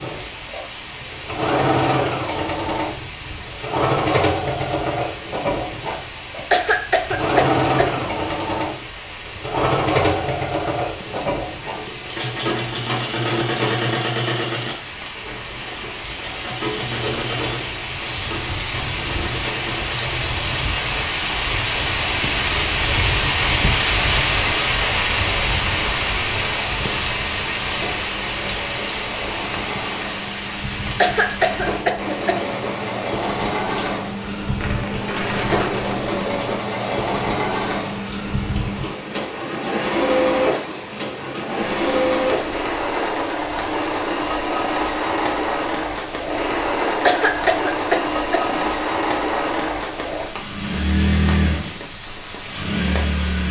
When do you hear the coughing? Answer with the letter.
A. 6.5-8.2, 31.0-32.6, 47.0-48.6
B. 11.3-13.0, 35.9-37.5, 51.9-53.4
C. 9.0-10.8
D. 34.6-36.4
A.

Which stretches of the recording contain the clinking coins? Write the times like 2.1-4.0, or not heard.
34.6-36.4.